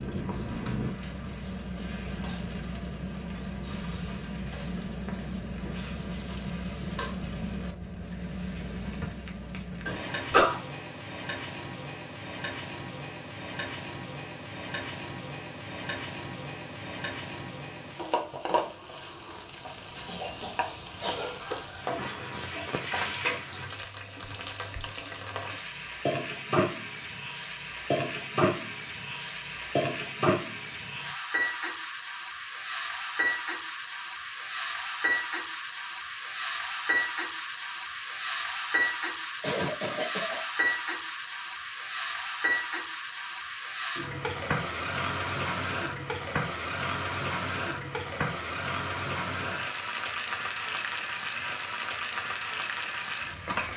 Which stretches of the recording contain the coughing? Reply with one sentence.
You can hear the coughing from 9.8 to 10.6 s, from 20.1 to 21.6 s and from 39.4 to 40.4 s.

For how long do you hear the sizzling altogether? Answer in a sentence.
You can hear the sizzling for 54 seconds altogether.